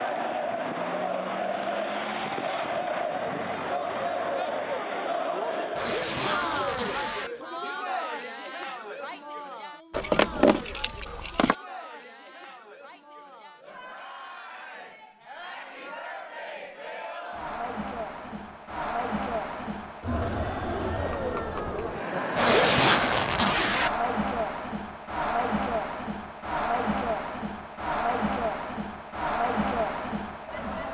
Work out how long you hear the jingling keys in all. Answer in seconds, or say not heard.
2 s.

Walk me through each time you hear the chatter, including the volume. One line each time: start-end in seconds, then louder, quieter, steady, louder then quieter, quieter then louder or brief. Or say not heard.
0.0-30.8 quieter then louder.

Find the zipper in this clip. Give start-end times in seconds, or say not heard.
5.8-7.3, 22.4-23.9.